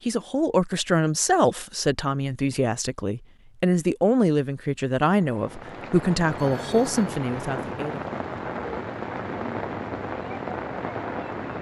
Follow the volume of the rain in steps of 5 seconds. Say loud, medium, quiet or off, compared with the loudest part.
off, loud, loud.